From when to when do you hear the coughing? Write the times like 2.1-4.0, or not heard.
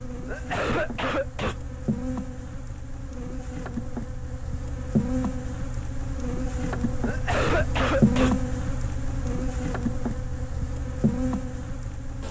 0.2-1.6, 7.0-8.4.